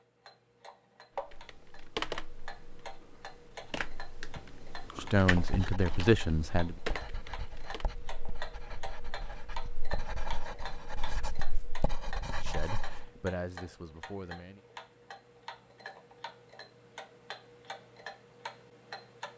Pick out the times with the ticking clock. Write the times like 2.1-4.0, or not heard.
0.0-19.3.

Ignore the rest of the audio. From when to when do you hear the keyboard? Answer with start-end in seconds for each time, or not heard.
1.1-7.8.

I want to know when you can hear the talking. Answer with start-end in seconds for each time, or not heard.
5.0-6.8, 12.2-14.6.